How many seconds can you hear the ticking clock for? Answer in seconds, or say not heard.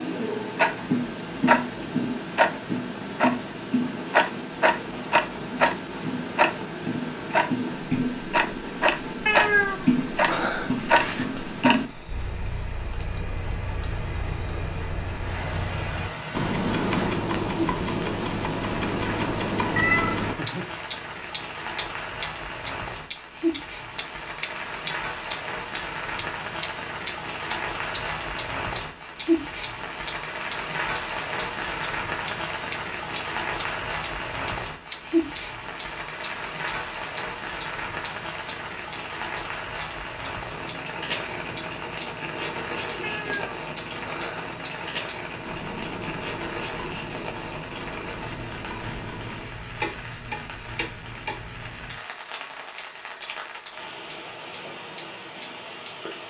56 s.